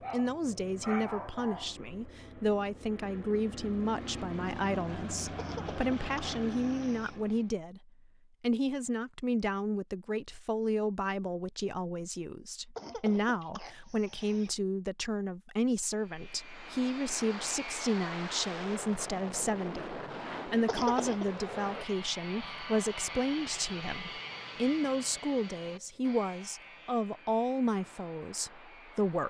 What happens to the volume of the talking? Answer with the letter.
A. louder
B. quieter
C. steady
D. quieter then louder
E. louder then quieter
C.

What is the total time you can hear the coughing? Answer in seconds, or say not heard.
4 s.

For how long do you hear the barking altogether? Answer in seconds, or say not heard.
2 s.